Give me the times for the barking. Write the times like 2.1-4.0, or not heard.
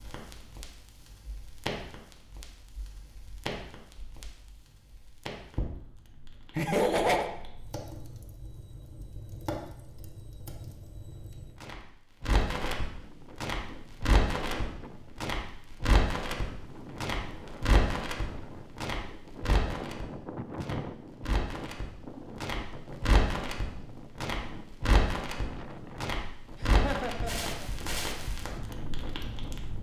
not heard.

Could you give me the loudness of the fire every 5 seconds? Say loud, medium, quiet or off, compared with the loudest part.
medium, medium, loud, loud, loud, loud.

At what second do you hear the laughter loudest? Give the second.
7 s.